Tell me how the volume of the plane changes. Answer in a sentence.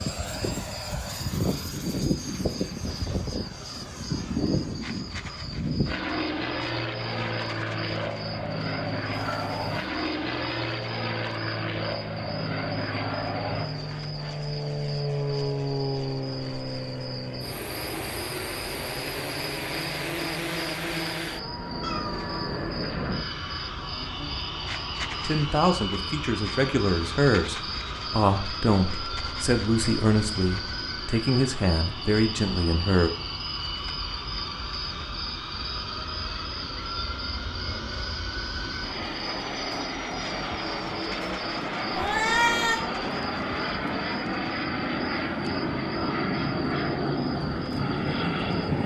The volume of the plane goes down, then up.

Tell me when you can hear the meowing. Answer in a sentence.
You can hear the meowing from 9.1 to 9.8 s, from 21.8 to 22.9 s and from 42.0 to 42.8 s.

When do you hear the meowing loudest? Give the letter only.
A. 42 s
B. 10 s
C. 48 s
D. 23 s
A.